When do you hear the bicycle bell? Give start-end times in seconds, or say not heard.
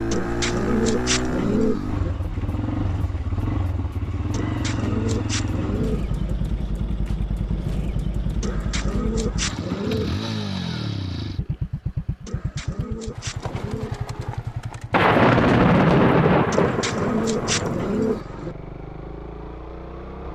not heard.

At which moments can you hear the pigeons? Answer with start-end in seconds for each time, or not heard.
0.1-2.1, 4.3-6.3, 8.4-10.2, 12.2-14.2, 16.5-18.6.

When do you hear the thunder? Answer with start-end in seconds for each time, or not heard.
14.9-18.2.